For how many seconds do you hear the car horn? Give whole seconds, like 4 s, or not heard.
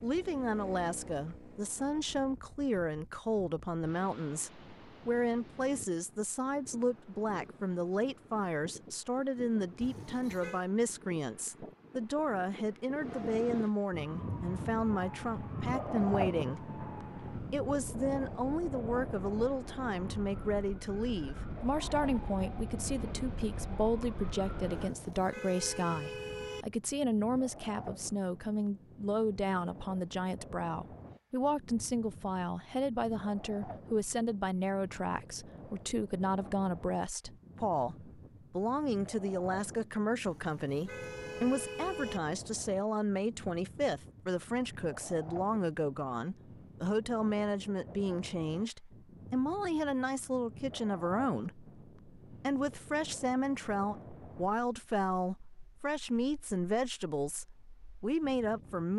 5 s.